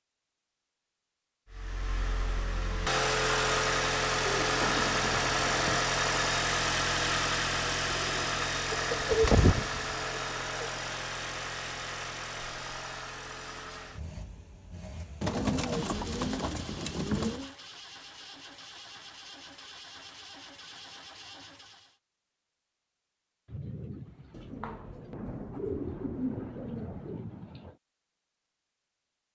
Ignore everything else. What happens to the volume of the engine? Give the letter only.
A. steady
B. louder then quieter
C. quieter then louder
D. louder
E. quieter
E.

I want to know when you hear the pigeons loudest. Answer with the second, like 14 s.
9 s.